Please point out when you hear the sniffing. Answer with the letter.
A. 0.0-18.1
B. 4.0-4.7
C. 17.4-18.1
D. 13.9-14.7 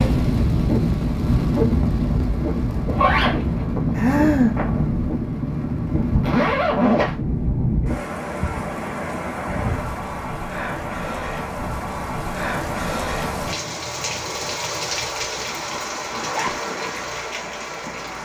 B.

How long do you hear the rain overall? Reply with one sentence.
The rain can be heard for 18 seconds in total.